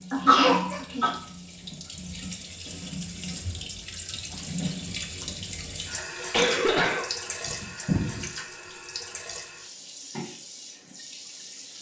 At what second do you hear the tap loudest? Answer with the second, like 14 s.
5 s.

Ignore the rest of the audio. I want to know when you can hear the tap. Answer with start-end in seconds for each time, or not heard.
0.0-11.7.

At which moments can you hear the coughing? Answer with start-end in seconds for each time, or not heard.
0.1-1.1, 6.3-8.2.